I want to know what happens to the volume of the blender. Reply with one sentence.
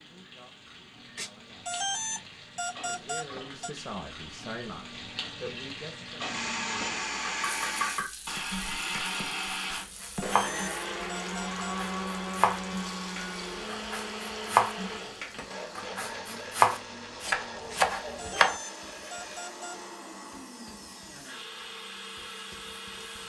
The volume of the blender goes down.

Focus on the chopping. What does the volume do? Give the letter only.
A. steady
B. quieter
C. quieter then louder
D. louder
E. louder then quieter
D.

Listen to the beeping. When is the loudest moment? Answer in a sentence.
The volume of the beeping peaks at 2 seconds.